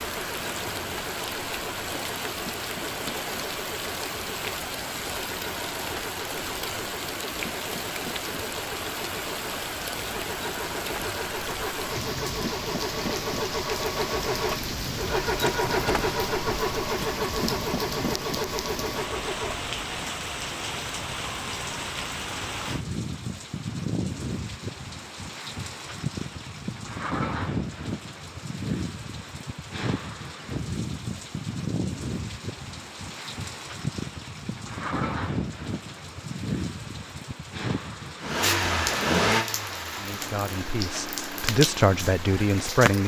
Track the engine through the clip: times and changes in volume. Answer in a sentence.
The engine can be heard from 0.0 to 19.8 s, getting louder; and from 38.2 to 43.0 s, getting quieter.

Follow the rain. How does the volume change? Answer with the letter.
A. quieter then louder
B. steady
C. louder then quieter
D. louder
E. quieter
B.